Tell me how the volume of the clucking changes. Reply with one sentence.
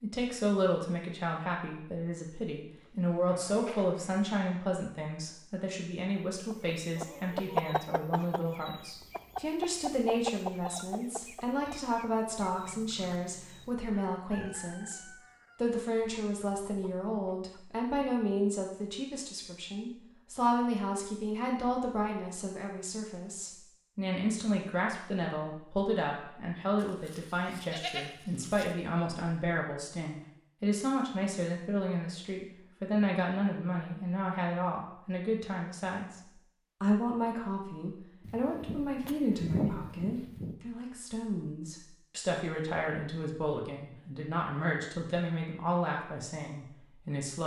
The volume of the clucking goes down.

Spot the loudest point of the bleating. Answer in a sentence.
The volume of the bleating peaks at 40 seconds.